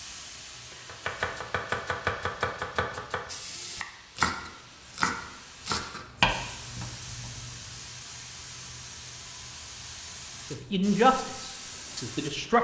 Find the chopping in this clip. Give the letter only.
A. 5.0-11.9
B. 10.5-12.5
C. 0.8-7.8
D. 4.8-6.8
C.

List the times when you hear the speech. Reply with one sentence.
You can hear the speech from 10.5 to 12.5 s.